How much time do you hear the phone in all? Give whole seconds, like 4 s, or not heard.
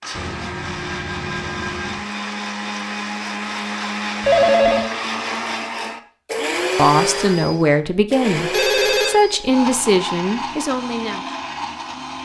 3 s.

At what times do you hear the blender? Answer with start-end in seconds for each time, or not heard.
0.0-12.2.